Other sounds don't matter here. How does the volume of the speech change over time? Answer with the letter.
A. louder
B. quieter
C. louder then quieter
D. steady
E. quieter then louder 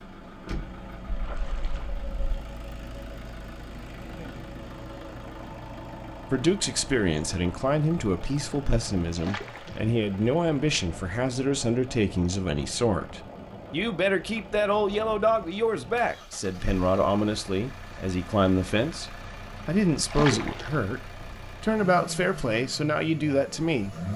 D.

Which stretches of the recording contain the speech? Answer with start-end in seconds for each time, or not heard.
6.3-24.1.